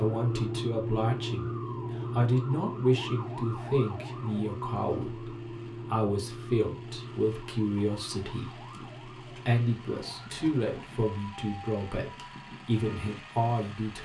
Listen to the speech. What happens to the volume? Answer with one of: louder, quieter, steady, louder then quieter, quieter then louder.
steady.